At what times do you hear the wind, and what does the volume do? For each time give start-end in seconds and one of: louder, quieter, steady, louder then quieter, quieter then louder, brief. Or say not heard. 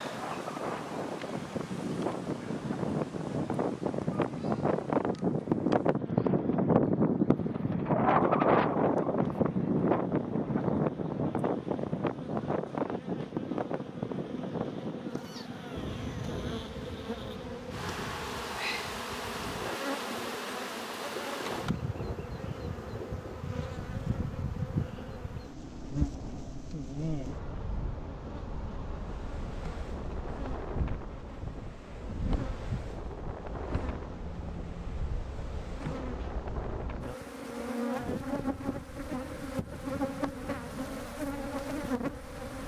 0.0-42.6 quieter.